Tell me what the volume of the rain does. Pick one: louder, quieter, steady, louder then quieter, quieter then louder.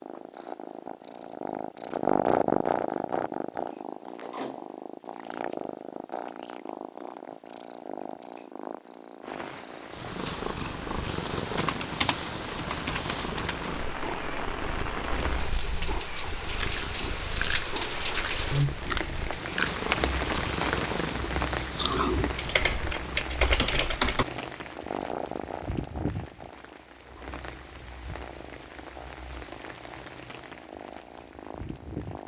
louder then quieter.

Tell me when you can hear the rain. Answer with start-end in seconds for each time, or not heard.
9.2-32.2.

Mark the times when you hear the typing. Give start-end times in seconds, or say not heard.
11.6-13.7, 22.4-24.2.